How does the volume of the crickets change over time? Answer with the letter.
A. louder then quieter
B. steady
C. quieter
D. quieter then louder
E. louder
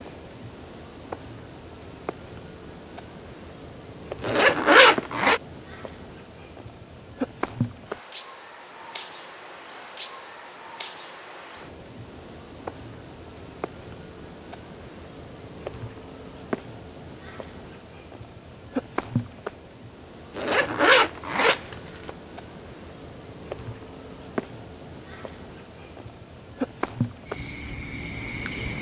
B.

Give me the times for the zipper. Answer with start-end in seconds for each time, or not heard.
4.2-5.4, 20.4-22.1.